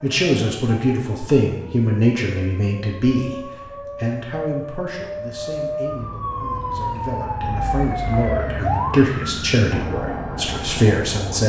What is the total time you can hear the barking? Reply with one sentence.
You can't hear the barking here.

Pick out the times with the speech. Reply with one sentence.
The speech can be heard from 0.0 to 11.4 s.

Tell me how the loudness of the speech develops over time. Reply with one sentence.
The loudness of the speech goes down, then up.